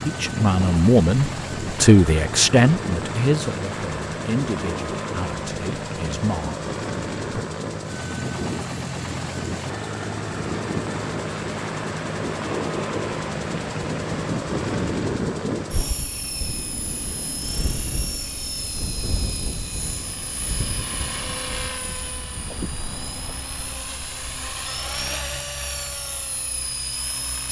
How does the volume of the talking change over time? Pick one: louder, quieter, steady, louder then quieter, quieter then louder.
quieter.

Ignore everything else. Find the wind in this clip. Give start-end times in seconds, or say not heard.
0.0-23.4.